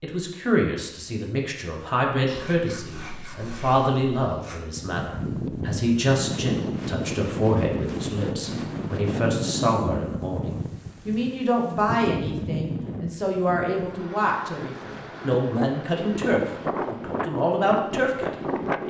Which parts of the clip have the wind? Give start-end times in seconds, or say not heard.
4.8-18.8.